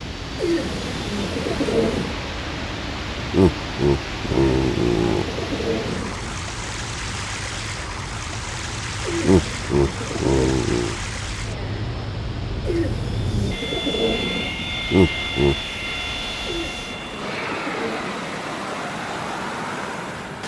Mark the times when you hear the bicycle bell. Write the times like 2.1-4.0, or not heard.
not heard.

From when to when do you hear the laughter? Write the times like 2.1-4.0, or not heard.
3.3-5.2, 9.2-11.0, 14.9-15.8.